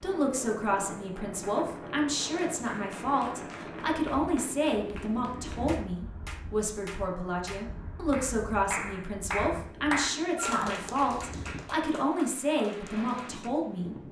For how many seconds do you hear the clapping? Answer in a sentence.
You can hear the clapping for 11 seconds altogether.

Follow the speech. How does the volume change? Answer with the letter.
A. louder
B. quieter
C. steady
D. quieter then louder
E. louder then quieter
C.